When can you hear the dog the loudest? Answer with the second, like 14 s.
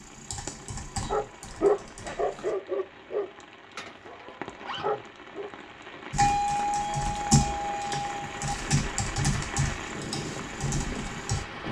2 s.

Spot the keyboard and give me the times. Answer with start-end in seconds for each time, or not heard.
0.0-2.5, 6.1-11.4.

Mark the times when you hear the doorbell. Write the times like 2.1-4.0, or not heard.
6.2-8.6.